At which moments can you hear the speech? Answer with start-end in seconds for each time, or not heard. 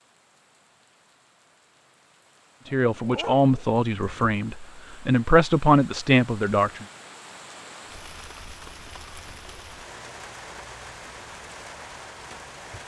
2.7-6.8.